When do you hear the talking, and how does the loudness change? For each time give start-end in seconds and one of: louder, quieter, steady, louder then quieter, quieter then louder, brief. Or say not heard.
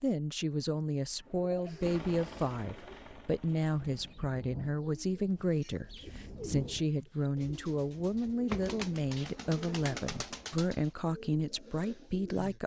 0.0-12.6 steady.